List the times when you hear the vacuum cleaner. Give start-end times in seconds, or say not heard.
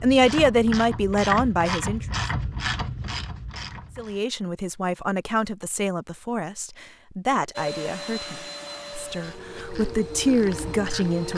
7.5-11.3.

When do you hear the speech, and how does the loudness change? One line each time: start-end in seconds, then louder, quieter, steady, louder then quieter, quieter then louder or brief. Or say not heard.
0.0-2.0 brief
4.0-11.3 quieter then louder.